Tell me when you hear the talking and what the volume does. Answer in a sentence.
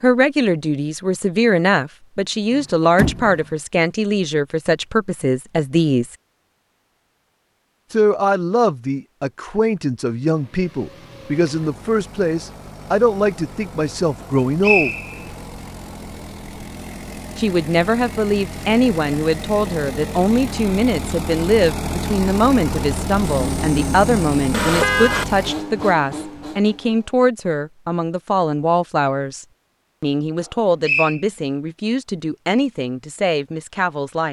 You can hear the talking from 0.0 to 6.2 s, at a steady volume; from 7.9 to 14.9 s, at a steady volume; and from 17.4 to 34.2 s, at a steady volume.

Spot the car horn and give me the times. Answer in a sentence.
You can hear the car horn from 2.5 to 3.5 s and from 23.2 to 25.2 s.